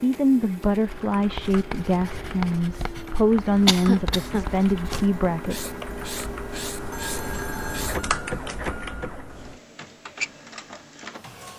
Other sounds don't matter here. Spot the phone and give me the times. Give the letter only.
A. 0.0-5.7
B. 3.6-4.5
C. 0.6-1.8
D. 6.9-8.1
D.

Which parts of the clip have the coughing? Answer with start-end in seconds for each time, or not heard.
3.6-4.5.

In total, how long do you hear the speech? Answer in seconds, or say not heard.
6 s.